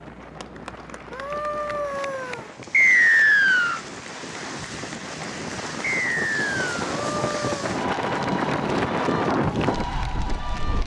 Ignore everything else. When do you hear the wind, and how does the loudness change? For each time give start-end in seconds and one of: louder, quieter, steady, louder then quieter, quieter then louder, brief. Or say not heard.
0.0-10.8 louder.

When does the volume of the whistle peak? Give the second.
3 s.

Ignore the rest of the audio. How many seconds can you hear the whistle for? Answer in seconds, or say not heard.
2 s.